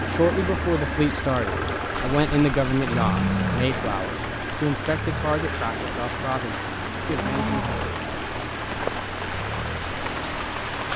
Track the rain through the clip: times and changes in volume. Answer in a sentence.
You can hear the rain from 0.0 to 10.9 s, getting louder.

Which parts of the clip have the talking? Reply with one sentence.
You can hear the talking from 0.0 to 7.8 s.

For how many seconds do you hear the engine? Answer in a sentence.
You can hear the engine for 11 seconds altogether.